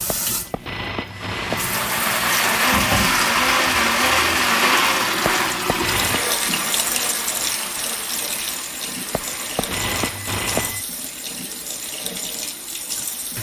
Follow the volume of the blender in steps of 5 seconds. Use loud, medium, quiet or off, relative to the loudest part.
loud, medium, off.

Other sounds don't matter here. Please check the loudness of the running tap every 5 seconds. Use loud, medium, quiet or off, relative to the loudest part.
loud, loud, medium.